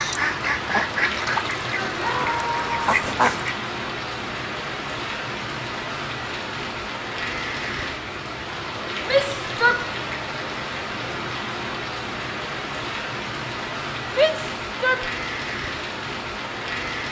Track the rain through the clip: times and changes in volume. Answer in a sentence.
The rain can be heard from 0.0 to 17.0 s, at a steady volume.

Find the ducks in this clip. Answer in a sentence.
You can hear the ducks from 0.0 to 3.5 s.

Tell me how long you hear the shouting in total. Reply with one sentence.
You can hear the shouting for 3 seconds altogether.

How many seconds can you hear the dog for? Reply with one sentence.
The dog can't be heard in this clip.